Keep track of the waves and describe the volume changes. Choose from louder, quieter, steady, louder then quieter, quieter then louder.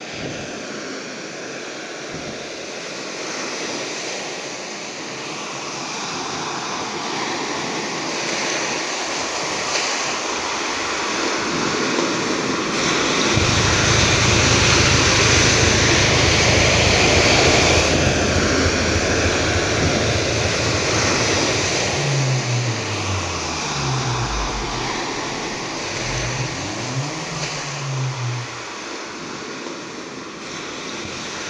louder then quieter.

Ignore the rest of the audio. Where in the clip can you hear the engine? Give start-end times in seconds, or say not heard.
13.3-28.4.